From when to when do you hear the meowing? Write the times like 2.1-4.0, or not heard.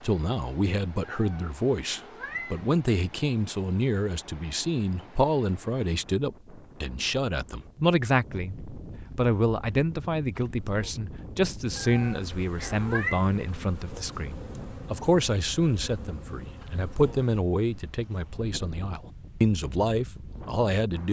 1.1-2.6, 11.8-13.2.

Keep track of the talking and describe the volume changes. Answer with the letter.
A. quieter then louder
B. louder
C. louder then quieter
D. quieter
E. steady
E.